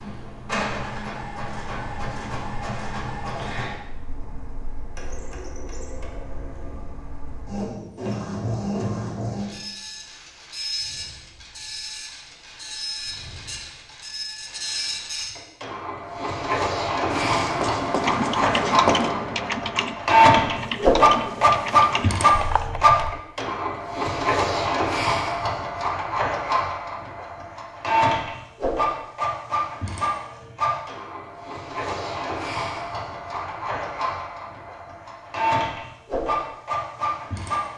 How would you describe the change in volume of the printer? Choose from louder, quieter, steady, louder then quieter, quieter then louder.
louder then quieter.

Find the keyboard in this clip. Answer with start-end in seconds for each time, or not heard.
17.9-23.0.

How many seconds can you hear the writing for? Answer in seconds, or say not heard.
2 s.